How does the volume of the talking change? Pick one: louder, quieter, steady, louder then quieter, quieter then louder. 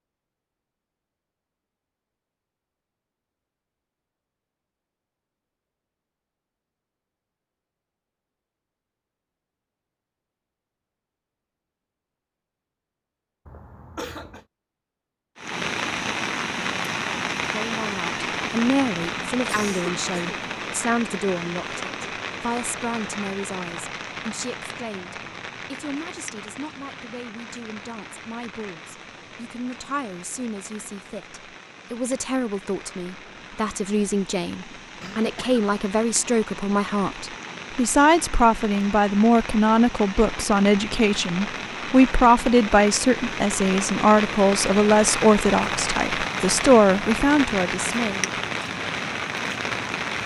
quieter then louder.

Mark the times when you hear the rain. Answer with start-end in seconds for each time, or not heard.
15.3-50.2.